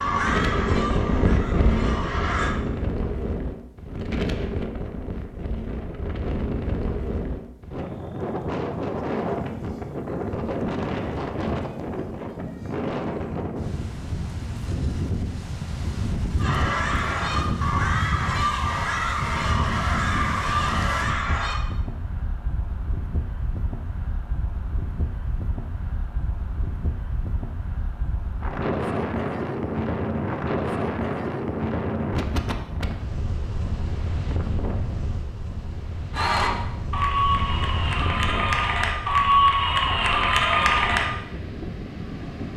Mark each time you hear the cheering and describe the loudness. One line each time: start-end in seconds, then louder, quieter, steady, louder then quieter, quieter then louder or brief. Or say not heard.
0.0-2.5 brief
16.4-21.6 steady
36.1-41.1 quieter then louder.